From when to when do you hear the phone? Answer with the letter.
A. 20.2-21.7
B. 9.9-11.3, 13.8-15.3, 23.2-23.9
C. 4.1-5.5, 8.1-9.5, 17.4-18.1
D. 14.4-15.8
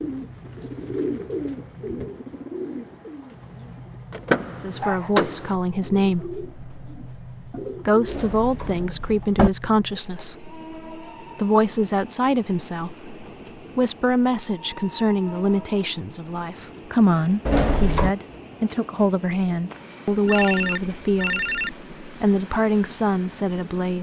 A.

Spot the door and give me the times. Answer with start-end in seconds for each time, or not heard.
4.1-5.5, 8.1-9.5, 17.4-18.1.